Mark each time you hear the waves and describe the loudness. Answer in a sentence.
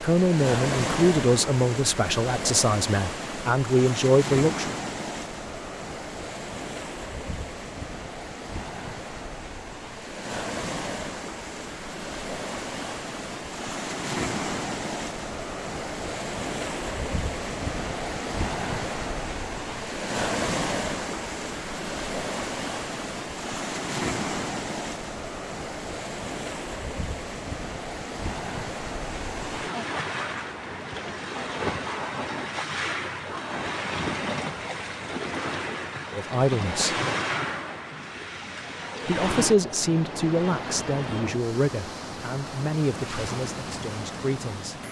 You can hear the waves from 0.0 to 44.8 s, at a steady volume.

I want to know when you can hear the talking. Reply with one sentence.
The talking can be heard from 0.0 to 4.8 s, from 36.1 to 37.0 s and from 39.0 to 44.8 s.